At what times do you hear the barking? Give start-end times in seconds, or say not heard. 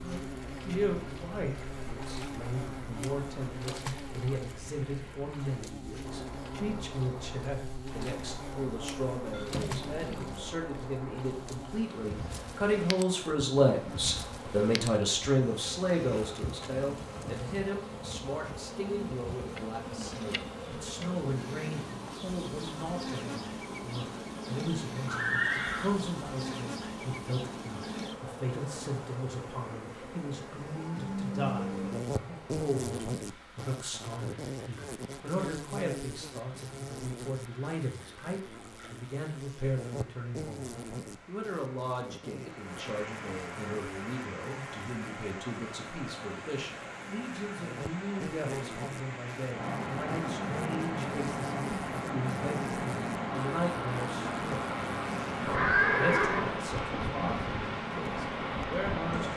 not heard.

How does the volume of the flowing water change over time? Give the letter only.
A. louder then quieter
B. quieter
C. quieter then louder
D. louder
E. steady
D.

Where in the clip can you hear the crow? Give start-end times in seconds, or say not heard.
not heard.